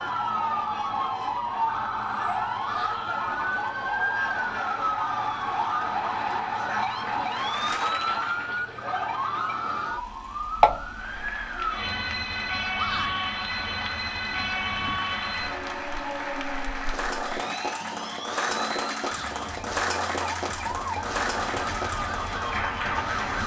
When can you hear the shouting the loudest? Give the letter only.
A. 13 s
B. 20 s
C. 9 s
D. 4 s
A.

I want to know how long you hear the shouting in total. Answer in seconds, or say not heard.
2 s.